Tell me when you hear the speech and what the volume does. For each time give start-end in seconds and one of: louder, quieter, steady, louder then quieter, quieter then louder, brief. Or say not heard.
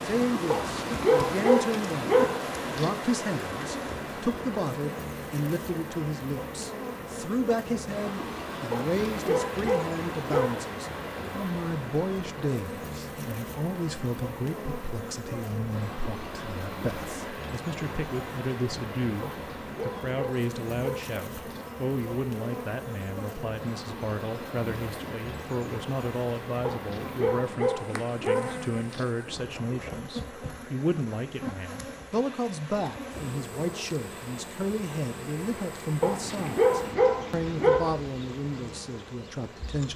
0.0-39.9 steady.